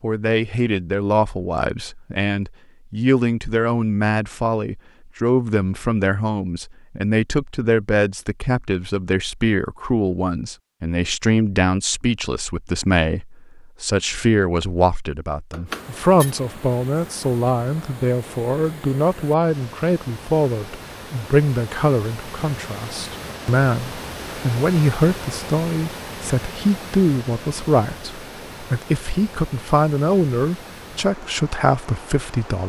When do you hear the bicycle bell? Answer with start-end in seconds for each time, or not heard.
15.5-16.4.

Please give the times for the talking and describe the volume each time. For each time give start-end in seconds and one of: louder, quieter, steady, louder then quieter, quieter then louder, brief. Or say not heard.
0.0-32.6 steady.